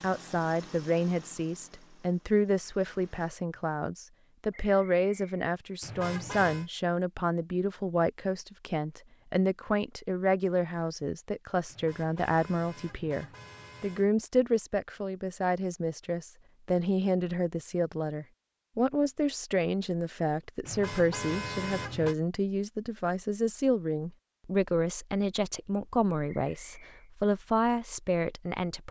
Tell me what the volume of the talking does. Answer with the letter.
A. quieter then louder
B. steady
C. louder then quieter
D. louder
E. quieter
B.